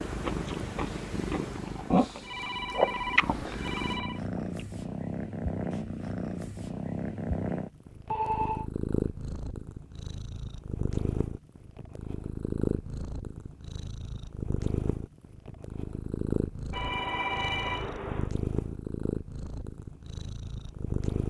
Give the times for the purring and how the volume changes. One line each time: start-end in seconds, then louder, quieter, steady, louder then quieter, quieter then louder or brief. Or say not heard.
0.0-21.2 steady.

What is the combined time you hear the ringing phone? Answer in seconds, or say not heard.
4 s.